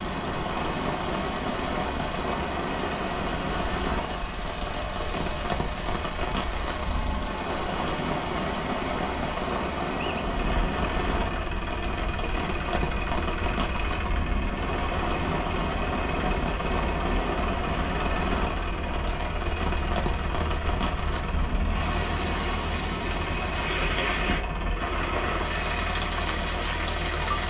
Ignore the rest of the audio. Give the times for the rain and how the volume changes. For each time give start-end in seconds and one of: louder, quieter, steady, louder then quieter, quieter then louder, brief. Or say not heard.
0.0-27.4 steady.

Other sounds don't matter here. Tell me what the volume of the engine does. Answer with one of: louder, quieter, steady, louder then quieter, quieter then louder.
steady.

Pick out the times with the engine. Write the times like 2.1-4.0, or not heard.
0.0-27.4.